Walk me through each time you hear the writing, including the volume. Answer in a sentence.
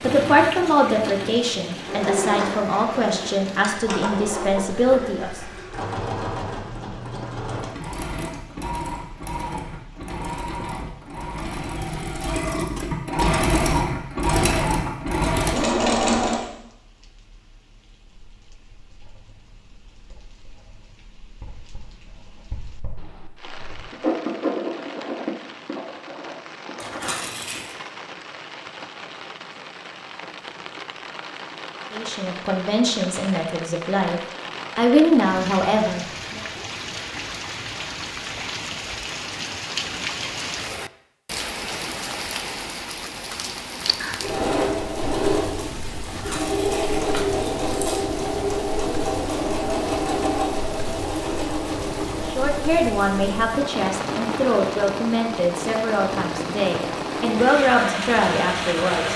You can hear the writing from 18.2 to 27.7 s, getting louder then quieter.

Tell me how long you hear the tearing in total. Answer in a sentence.
The tearing can be heard for 3 seconds in total.